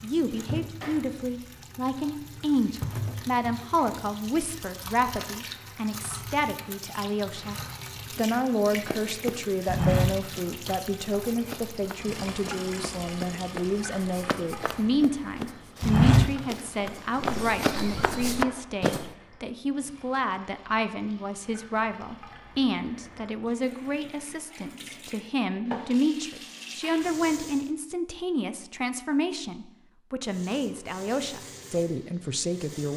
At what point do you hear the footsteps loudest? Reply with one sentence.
The loudest moment of the footsteps is at 16 seconds.